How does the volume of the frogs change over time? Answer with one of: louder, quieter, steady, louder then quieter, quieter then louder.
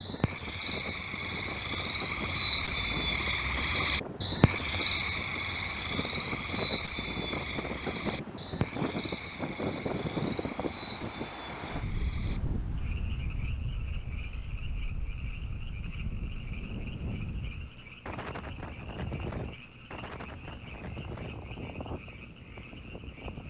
quieter.